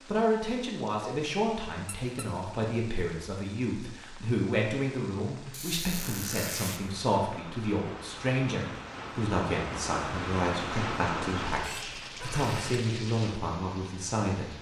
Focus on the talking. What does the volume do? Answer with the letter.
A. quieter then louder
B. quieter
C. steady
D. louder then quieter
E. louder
C.